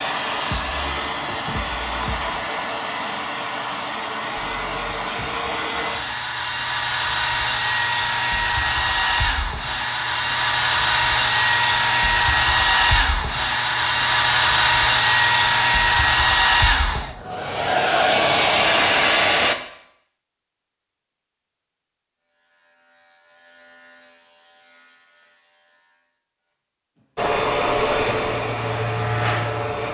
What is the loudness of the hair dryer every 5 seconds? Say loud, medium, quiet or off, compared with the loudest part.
medium, medium, loud, loud, off, medium.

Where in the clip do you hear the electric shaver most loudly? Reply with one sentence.
The loudest moment of the electric shaver is at 29 seconds.